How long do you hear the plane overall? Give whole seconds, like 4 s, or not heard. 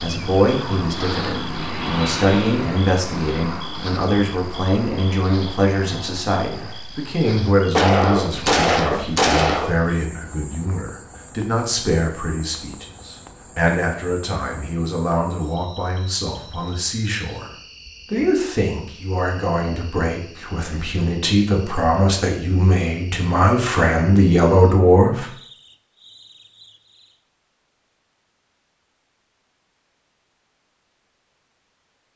7 s.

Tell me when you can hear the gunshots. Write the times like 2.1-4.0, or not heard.
7.8-9.8.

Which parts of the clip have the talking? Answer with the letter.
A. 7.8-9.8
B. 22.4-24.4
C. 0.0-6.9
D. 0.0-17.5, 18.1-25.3
D.